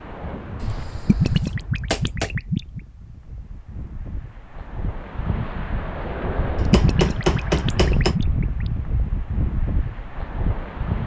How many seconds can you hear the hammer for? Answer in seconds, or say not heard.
3 s.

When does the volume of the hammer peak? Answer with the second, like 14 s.
7 s.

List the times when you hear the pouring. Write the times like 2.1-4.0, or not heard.
1.1-2.8, 6.7-8.7.